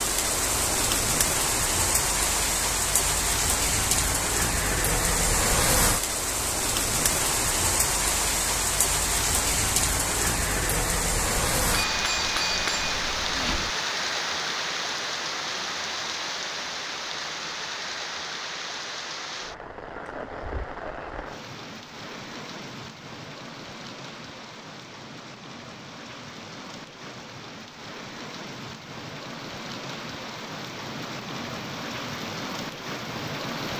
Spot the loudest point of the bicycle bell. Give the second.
13 s.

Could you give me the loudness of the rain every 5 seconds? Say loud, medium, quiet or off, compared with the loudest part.
loud, loud, loud, medium, quiet, quiet, medium.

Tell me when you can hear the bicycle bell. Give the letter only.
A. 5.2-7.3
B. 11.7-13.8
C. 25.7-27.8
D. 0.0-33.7
B.